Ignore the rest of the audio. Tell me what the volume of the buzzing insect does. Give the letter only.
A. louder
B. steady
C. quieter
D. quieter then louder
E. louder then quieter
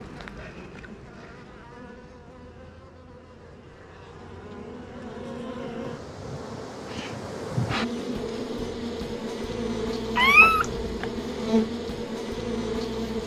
A.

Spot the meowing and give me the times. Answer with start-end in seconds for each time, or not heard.
10.2-11.1.